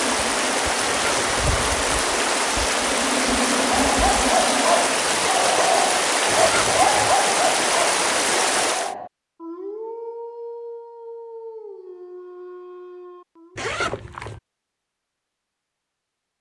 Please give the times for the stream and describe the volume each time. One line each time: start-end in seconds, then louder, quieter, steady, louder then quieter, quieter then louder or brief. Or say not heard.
0.0-8.9 steady.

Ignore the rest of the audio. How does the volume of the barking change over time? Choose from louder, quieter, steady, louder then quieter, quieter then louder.
quieter.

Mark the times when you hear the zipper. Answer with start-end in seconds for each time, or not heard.
0.8-1.4, 6.3-7.2, 13.6-14.4.